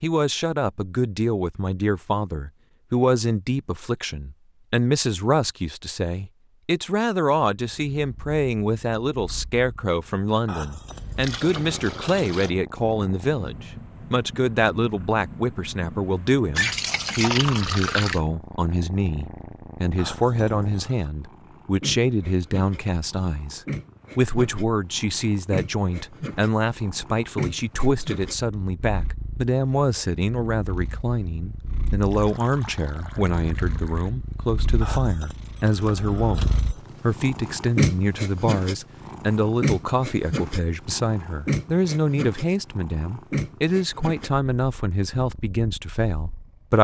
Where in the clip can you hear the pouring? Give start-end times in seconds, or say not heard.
10.9-12.6, 16.6-18.2, 31.9-34.1.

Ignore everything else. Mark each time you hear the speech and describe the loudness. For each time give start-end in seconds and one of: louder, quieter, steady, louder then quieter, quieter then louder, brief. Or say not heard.
0.0-46.7 steady.